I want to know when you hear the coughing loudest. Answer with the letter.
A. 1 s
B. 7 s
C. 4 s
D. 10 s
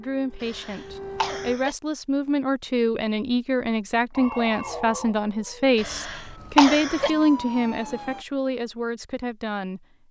B.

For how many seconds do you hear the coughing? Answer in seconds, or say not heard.
3 s.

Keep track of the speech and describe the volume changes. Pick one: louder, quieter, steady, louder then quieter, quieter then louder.
louder then quieter.